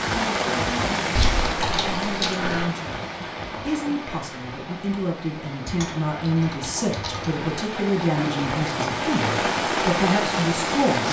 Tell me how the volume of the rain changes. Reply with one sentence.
The loudness of the rain goes down, then up.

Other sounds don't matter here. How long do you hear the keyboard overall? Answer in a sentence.
You can hear the keyboard for 3 seconds altogether.